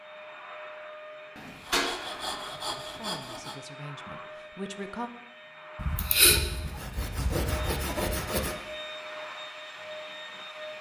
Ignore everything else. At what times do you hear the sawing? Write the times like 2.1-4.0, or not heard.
1.4-3.5, 5.8-8.6.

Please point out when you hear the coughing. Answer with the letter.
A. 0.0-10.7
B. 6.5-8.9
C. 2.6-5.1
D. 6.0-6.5
D.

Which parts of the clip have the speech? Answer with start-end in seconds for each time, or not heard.
2.6-5.1.